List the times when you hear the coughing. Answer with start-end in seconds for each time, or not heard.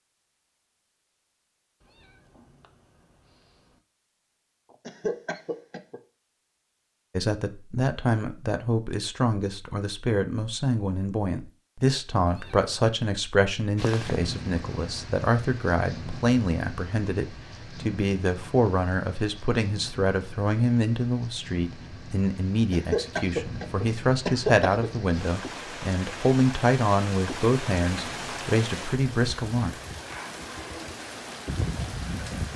4.8-6.0, 22.7-24.9.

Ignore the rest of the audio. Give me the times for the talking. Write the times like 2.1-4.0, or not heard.
7.2-29.7.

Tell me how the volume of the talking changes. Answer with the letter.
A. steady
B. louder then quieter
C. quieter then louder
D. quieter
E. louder
A.